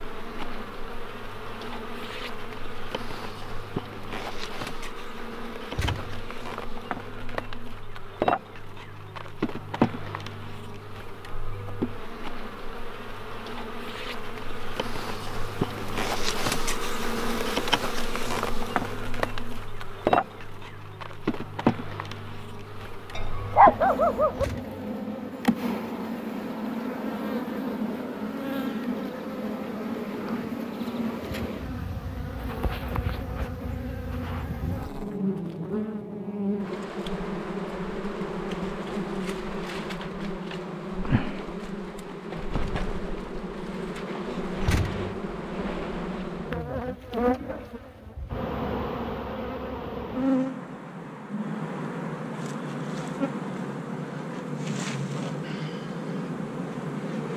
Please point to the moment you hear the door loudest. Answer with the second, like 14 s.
45 s.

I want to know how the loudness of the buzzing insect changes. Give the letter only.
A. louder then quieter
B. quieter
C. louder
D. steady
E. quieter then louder
D.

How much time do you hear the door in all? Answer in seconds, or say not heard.
2 s.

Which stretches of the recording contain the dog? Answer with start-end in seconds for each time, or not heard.
23.1-24.4.